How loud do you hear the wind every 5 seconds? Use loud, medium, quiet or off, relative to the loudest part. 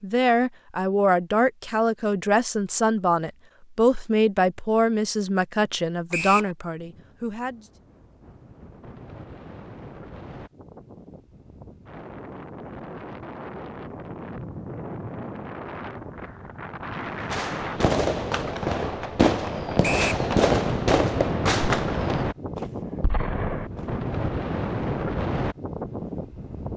off, quiet, medium, medium, loud, loud.